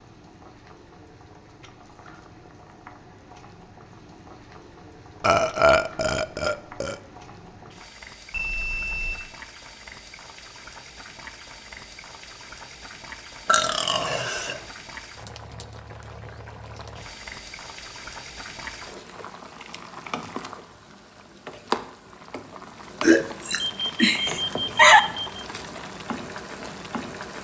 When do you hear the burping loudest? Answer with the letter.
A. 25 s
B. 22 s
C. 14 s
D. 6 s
A.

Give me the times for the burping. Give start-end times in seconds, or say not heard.
5.2-7.0, 13.4-14.6, 23.0-25.0.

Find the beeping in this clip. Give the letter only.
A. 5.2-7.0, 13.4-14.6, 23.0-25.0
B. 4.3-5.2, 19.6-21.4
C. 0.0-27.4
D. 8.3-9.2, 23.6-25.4
D.